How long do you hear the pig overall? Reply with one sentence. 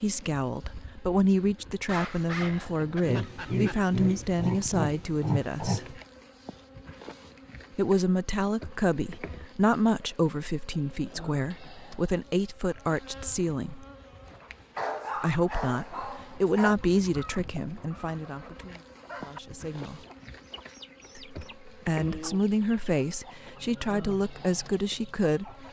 You can hear the pig for 3 seconds altogether.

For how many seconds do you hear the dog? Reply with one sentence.
You can hear the dog for 4 seconds altogether.